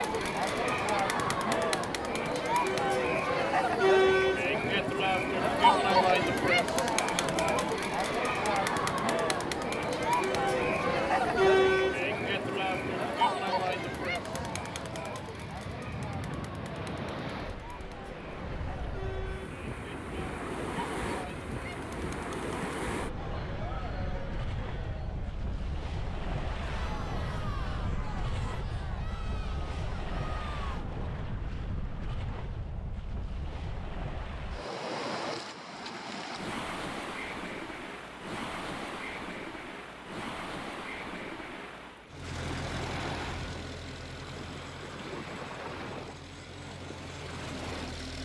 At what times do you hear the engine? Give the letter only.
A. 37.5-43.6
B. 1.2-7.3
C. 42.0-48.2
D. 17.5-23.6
C.